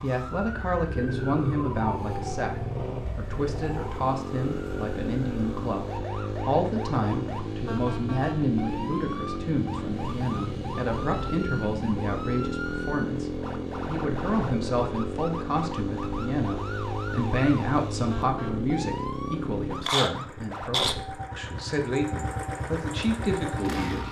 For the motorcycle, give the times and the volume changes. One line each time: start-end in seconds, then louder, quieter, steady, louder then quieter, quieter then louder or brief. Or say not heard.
0.2-24.0 steady.